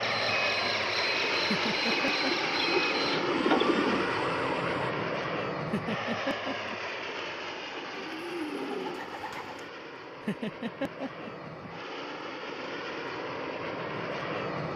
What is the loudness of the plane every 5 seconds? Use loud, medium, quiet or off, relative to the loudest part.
loud, medium, medium.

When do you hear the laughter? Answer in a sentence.
You can hear the laughter from 1.4 to 2.3 s, from 5.7 to 6.8 s and from 10.2 to 11.4 s.